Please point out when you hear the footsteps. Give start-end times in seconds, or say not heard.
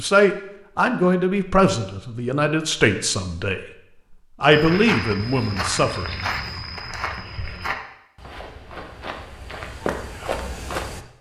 4.5-11.1.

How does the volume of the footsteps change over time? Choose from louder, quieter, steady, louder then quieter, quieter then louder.
quieter then louder.